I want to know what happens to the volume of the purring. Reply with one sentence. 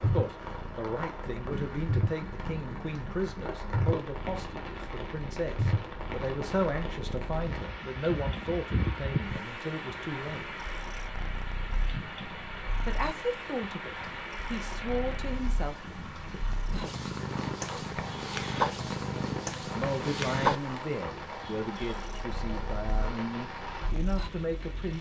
The volume of the purring goes down, then up.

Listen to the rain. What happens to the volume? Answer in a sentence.
The loudness of the rain stays about the same.